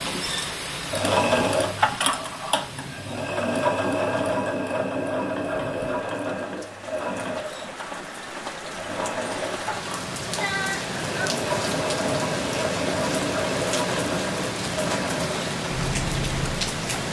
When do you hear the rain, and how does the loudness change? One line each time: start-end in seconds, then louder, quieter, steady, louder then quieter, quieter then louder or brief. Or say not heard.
0.0-17.0 quieter then louder.